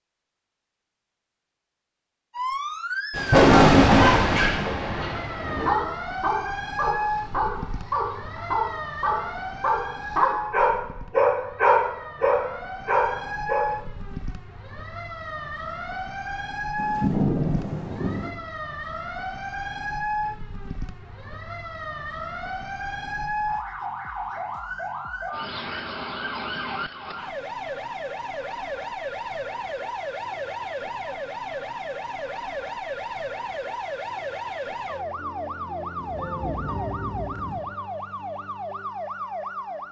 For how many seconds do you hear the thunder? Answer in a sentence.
You can hear the thunder for 6 seconds altogether.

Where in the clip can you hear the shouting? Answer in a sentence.
You can't hear the shouting here.